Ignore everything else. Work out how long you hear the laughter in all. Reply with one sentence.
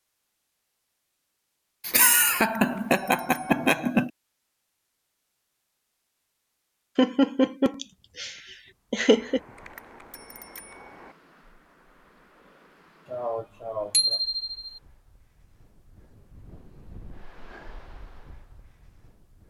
The laughter can be heard for 6 seconds in total.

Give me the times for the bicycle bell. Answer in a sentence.
The bicycle bell can be heard from 1.9 to 3.8 s, from 9.1 to 11.2 s and from 13.9 to 14.8 s.